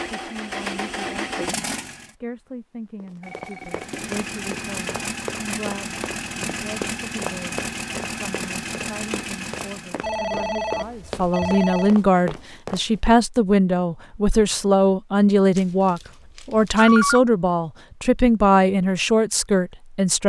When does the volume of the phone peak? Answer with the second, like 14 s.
17 s.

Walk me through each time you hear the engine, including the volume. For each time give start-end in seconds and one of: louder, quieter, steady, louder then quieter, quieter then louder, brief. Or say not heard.
0.0-2.1 brief
3.6-10.1 steady.